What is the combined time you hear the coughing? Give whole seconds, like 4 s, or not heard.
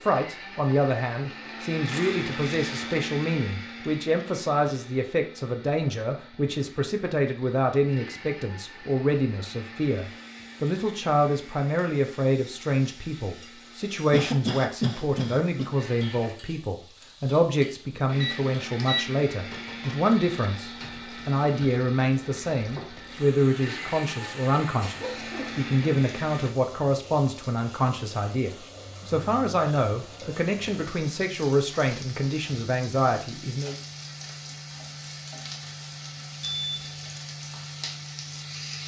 3 s.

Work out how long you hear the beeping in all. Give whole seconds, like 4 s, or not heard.
2 s.